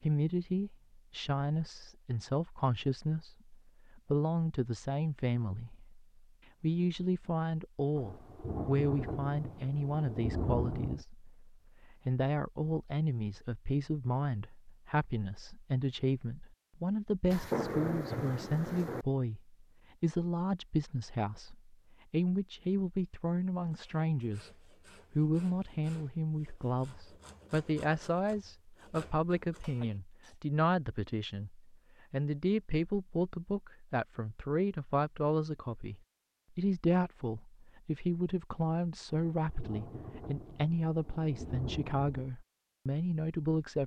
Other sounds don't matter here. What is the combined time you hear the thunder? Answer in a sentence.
You can hear the thunder for 8 seconds altogether.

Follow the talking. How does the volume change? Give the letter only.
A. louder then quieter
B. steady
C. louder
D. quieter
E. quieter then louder
B.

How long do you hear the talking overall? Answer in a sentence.
You can hear the talking for 43 seconds altogether.